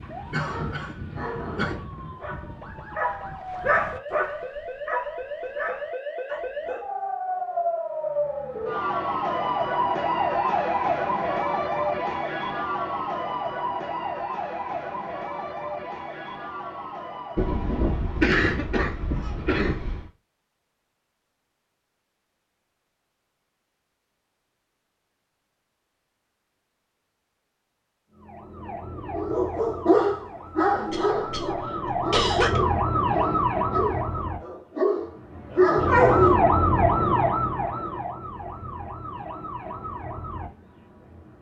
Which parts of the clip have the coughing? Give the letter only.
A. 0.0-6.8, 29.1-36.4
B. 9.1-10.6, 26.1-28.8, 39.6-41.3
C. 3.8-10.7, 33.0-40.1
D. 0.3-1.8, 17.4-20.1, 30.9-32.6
D.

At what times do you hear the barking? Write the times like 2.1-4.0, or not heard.
0.0-6.8, 29.1-36.4.